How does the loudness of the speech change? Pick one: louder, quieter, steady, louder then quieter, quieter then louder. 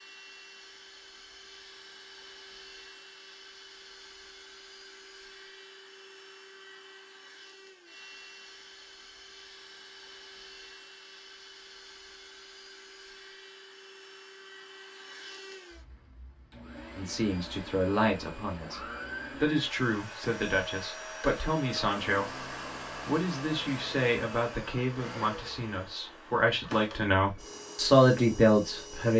louder.